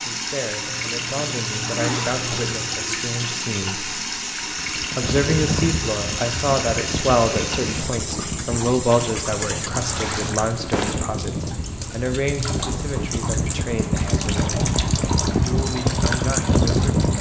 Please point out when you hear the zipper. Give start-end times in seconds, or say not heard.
0.7-2.7, 9.7-11.0.